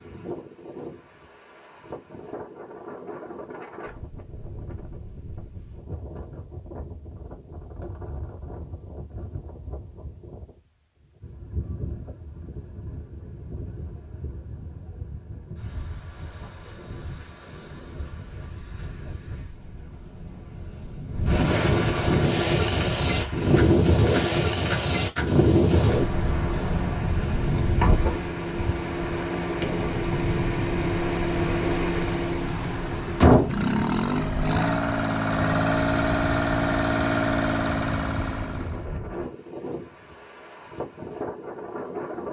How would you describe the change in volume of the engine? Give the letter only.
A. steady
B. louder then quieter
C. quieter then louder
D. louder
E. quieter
D.